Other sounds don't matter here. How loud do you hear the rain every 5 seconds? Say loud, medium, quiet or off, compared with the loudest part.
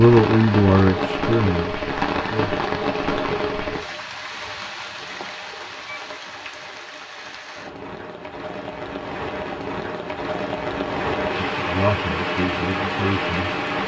loud, medium, loud.